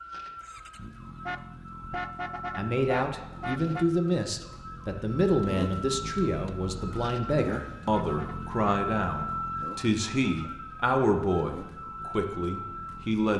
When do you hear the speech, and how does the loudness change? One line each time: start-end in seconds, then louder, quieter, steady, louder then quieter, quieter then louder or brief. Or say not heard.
2.5-13.3 steady.